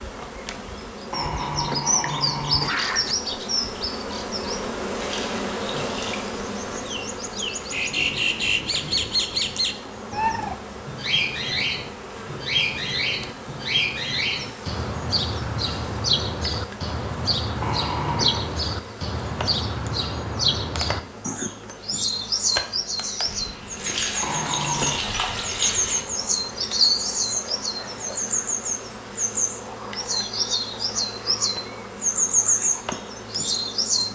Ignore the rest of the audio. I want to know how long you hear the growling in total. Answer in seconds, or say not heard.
4 s.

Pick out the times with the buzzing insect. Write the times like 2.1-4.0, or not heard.
0.0-34.1.